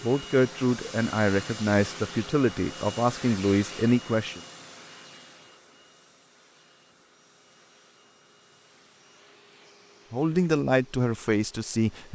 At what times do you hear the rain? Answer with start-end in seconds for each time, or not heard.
not heard.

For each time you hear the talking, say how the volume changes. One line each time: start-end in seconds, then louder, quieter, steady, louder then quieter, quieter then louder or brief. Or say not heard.
0.0-4.4 steady
10.1-12.0 brief.